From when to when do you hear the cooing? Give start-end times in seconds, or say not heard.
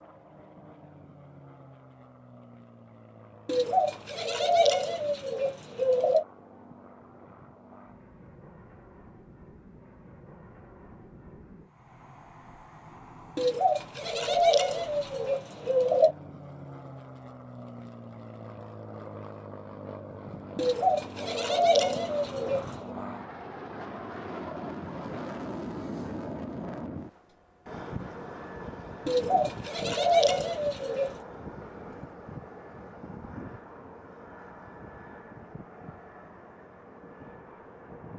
3.5-6.2, 13.3-16.1, 20.6-22.9, 29.1-31.1.